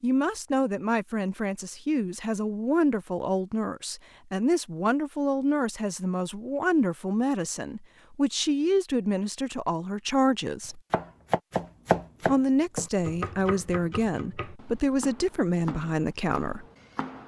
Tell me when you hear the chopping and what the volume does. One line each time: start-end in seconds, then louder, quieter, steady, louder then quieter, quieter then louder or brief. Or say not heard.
10.9-17.2 quieter.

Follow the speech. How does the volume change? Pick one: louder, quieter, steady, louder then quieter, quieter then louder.
steady.